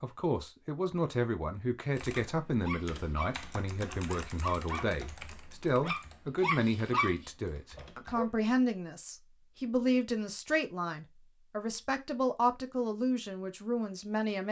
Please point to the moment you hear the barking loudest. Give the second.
7 s.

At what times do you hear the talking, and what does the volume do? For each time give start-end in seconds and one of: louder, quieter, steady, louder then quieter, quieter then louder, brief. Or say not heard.
0.0-14.4 steady.